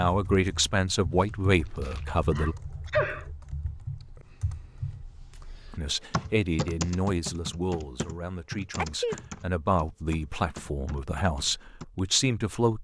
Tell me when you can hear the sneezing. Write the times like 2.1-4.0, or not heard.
2.3-3.2, 8.8-9.2.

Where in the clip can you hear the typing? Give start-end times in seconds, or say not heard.
0.1-12.0.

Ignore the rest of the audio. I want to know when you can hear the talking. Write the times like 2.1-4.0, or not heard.
0.0-2.5, 5.7-12.7.